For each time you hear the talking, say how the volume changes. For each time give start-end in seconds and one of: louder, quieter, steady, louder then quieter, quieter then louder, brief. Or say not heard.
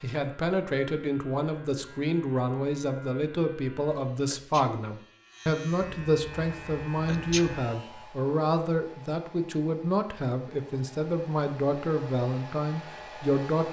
0.0-13.6 steady.